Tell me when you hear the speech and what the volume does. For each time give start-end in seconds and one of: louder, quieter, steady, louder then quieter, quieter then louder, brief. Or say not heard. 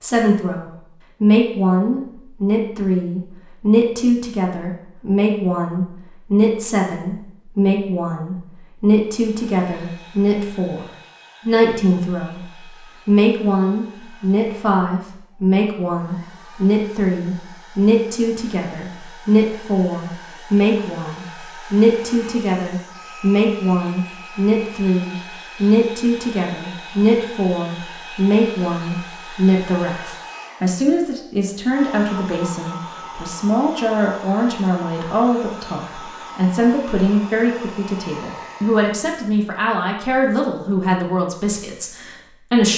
0.0-10.8 steady
11.4-12.4 brief
13.1-42.7 steady.